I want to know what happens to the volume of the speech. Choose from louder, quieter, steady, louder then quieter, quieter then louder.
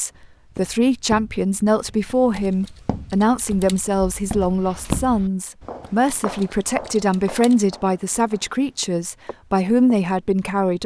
steady.